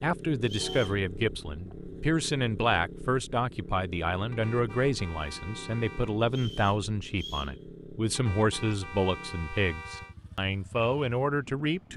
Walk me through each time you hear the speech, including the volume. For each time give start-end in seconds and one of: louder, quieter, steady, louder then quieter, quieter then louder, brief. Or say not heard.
0.0-11.9 steady.